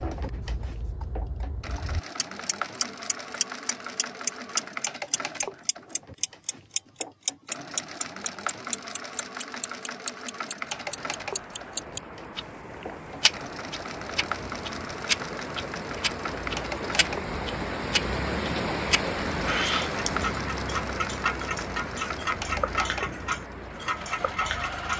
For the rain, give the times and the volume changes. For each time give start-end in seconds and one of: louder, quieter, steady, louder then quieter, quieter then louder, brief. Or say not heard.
10.6-24.9 louder then quieter.